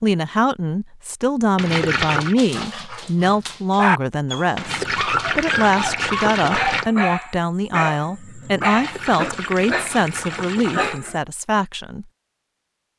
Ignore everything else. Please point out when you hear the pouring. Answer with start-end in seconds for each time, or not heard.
1.6-2.4, 4.5-6.9, 8.7-11.0.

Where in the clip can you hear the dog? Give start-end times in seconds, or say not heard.
2.4-11.2.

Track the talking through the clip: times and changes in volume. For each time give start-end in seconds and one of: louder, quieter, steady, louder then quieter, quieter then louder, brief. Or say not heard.
0.0-12.1 steady.